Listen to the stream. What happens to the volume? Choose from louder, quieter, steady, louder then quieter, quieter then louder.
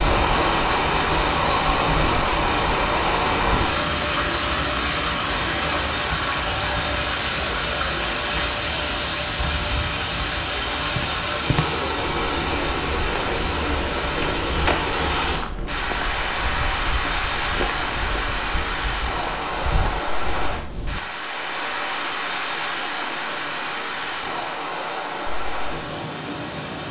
quieter.